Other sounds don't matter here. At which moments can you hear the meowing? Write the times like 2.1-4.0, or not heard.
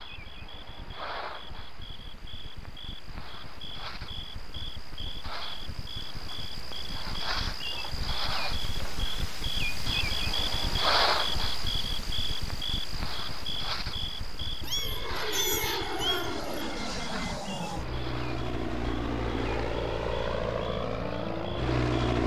14.6-16.4.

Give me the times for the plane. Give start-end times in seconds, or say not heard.
14.7-22.2.